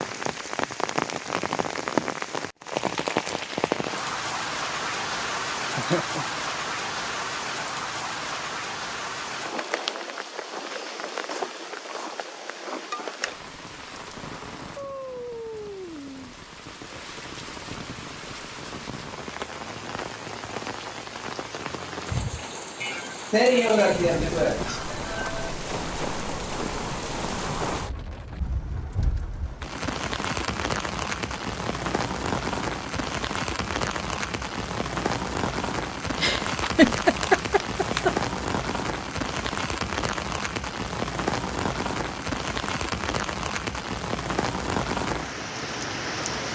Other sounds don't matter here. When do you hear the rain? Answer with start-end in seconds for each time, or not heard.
0.0-46.4.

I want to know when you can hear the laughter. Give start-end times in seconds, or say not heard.
5.8-6.2, 22.8-25.5, 36.2-38.1.